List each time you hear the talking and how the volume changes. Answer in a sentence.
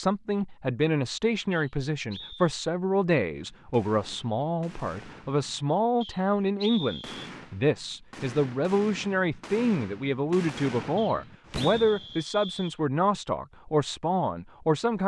The talking can be heard from 0.0 to 15.0 s, at a steady volume.